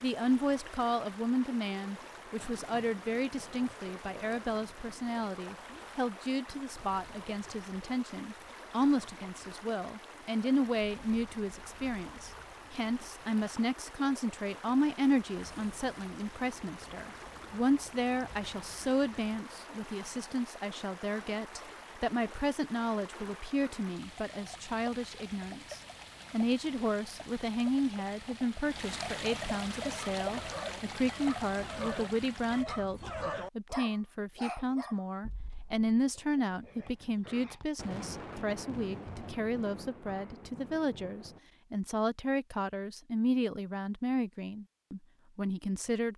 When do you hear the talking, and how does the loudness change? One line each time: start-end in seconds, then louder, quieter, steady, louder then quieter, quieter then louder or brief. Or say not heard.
0.0-46.1 steady.